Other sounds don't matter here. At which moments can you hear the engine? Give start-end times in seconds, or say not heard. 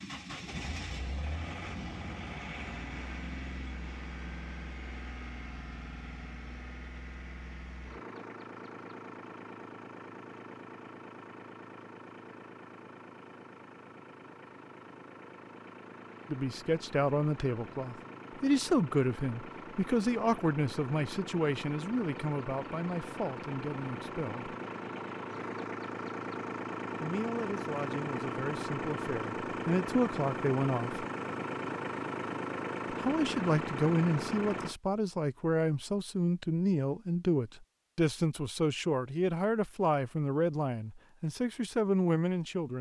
0.0-34.8.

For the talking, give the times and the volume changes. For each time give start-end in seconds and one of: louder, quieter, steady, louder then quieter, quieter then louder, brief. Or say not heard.
16.3-24.6 quieter
27.0-31.1 louder
32.9-42.7 steady.